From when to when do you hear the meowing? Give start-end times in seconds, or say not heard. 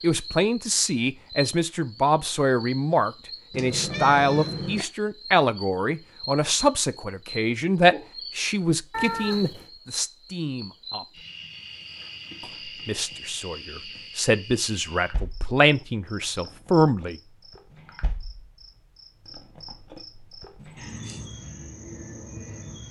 3.5-4.8, 8.9-9.7, 20.6-21.2.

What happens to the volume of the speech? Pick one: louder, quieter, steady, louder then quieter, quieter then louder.
quieter then louder.